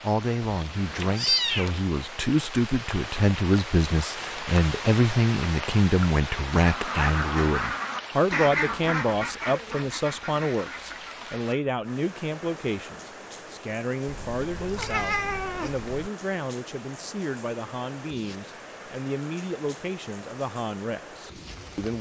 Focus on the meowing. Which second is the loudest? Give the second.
1 s.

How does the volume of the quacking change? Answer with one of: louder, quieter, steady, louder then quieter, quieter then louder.
quieter.